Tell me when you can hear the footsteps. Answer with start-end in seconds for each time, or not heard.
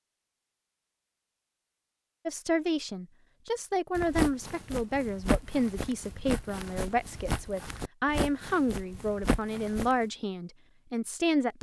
4.0-9.9.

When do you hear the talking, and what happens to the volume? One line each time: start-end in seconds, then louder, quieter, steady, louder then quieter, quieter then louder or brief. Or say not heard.
2.2-11.5 steady.